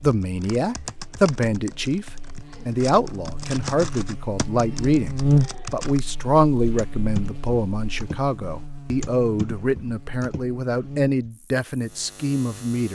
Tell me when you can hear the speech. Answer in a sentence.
You can hear the speech from 0.0 to 12.9 s.